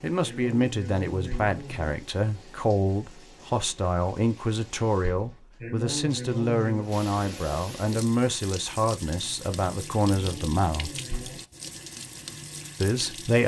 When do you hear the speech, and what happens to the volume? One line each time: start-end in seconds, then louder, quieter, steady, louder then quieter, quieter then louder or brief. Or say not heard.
0.0-10.9 steady
12.8-13.4 brief.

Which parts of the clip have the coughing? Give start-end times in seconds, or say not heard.
0.2-2.0, 5.6-6.9, 10.0-11.4.